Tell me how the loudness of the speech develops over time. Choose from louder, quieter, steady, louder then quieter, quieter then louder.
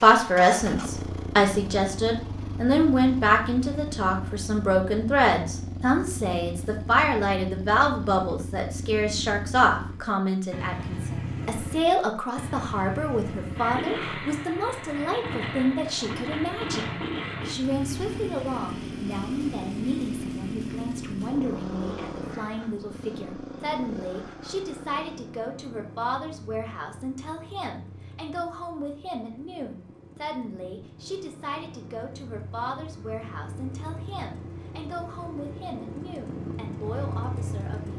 quieter.